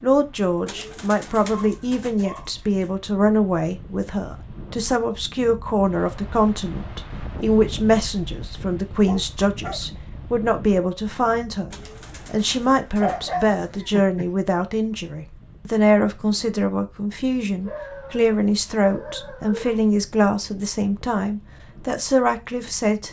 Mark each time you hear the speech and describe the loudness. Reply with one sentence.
You can hear the speech from 0.0 to 23.0 s, at a steady volume.